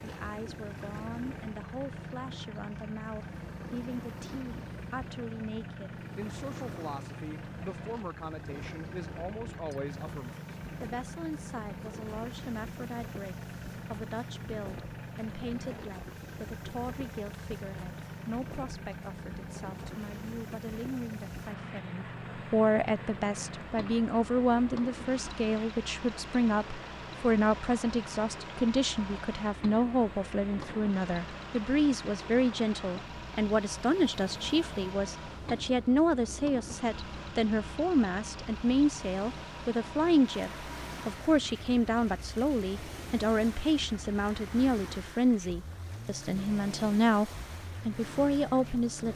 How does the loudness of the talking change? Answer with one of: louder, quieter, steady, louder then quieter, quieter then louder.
louder.